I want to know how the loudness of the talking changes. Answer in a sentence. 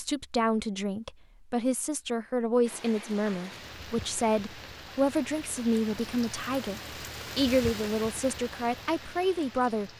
The loudness of the talking stays about the same.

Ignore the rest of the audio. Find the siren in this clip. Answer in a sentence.
The siren can't be heard in this clip.